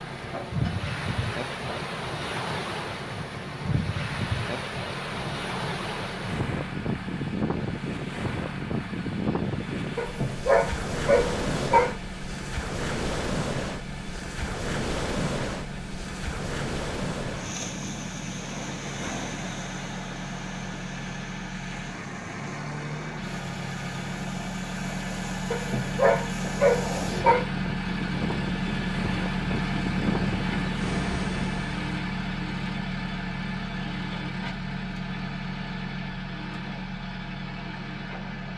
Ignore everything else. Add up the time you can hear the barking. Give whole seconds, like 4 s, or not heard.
4 s.